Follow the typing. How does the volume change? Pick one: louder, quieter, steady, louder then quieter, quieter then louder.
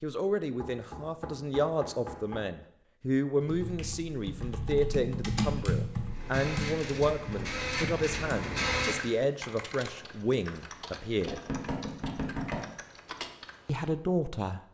quieter.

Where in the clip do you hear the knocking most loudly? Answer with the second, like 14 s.
12 s.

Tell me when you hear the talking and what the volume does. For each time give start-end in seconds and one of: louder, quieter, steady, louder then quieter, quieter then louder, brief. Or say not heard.
0.0-11.4 steady
13.7-14.6 brief.